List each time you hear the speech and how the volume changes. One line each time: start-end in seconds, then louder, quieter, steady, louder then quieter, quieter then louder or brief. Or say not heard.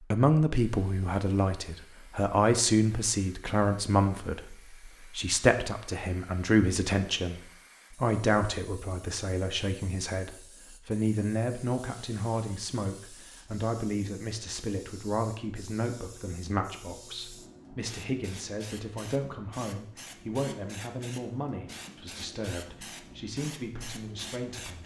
0.1-24.8 quieter.